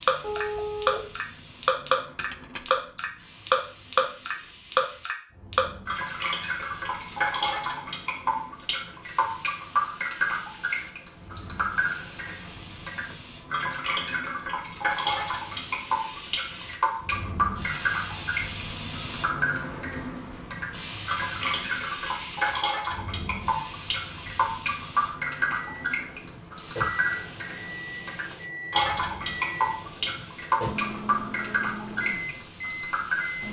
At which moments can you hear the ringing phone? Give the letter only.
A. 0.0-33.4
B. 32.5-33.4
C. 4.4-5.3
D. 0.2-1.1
D.